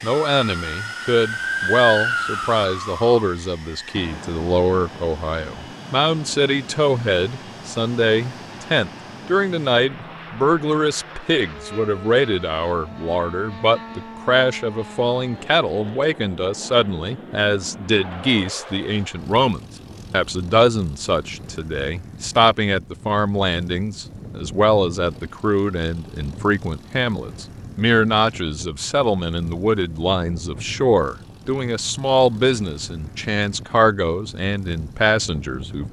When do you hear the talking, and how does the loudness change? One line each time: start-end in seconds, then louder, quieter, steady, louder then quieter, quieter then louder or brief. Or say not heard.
0.0-35.8 steady.